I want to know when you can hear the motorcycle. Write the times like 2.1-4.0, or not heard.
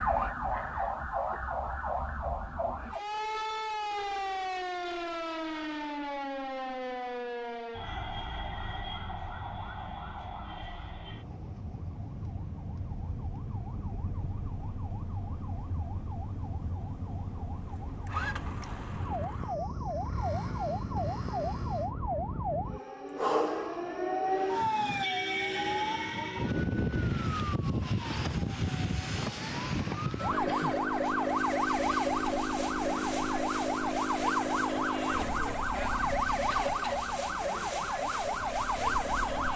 11.7-21.9, 30.2-39.5.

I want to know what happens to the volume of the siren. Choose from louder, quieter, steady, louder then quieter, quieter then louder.
quieter then louder.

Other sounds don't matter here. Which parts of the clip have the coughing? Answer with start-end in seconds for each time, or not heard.
36.5-37.0.